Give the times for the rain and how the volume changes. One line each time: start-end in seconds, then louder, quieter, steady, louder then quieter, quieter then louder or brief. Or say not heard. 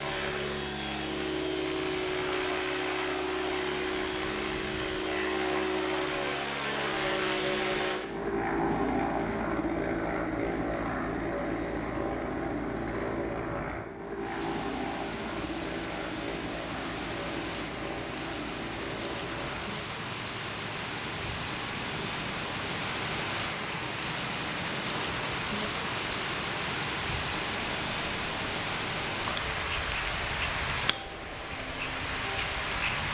14.2-33.0 louder.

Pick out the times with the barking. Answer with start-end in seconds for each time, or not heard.
not heard.